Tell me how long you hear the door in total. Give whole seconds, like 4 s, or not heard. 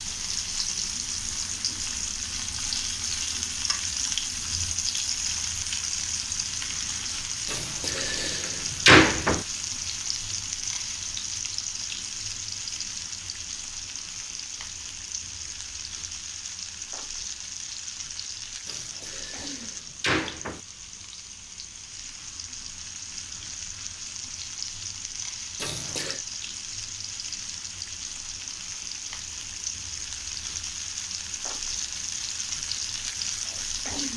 5 s.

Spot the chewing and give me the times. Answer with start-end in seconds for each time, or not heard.
not heard.